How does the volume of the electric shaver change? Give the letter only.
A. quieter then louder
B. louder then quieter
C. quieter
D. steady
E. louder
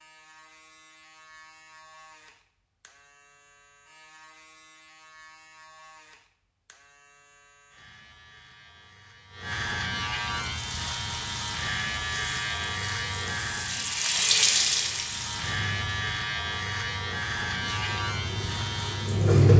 E.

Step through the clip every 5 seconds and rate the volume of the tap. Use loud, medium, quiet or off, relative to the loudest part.
off, off, loud, loud.